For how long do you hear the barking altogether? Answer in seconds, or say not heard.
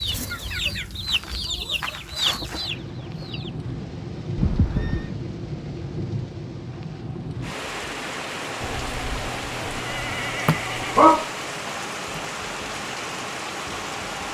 2 s.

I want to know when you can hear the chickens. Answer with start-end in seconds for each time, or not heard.
0.0-3.5.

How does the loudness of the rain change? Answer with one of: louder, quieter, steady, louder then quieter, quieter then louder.
louder.